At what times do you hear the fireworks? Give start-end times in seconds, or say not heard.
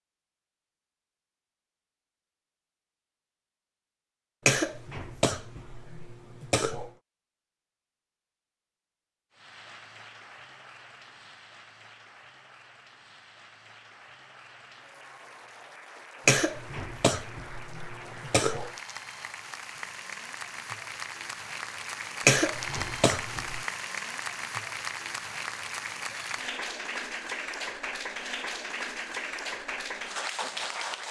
not heard.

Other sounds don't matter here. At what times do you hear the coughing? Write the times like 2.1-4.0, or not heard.
4.5-6.9, 16.2-18.7, 22.2-23.6.